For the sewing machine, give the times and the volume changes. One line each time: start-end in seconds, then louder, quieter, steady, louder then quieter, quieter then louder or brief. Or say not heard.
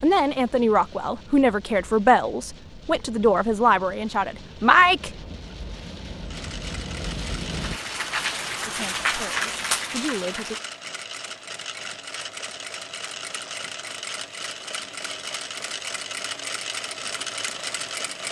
6.2-18.2 louder.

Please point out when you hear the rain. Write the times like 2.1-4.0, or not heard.
0.0-10.6.